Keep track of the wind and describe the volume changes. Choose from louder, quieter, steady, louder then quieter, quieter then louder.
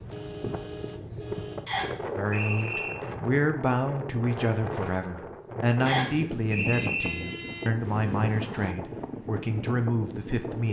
steady.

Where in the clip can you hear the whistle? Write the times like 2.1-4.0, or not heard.
1.6-2.9, 5.8-7.1.